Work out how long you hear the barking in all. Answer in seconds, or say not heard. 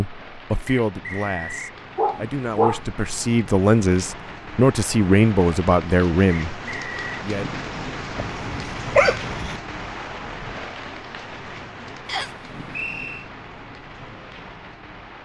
2 s.